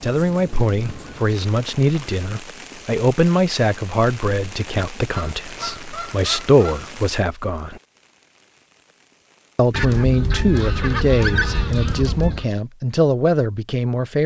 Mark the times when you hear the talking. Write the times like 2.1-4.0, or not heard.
0.0-7.8, 9.6-14.2.